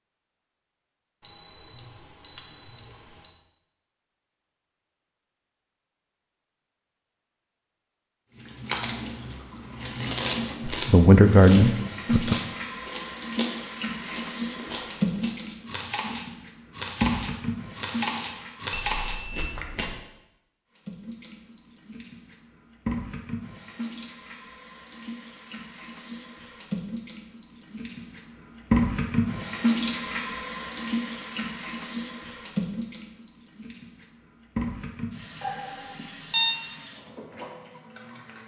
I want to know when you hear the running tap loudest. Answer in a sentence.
The loudest moment of the running tap is at 29 seconds.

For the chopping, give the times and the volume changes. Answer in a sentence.
The chopping can't be heard in this clip.